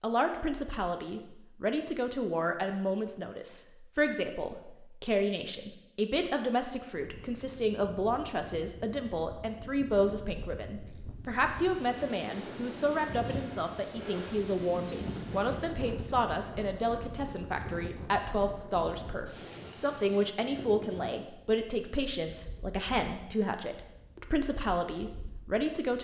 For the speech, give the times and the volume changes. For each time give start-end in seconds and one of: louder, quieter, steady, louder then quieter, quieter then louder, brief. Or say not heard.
0.0-25.9 steady.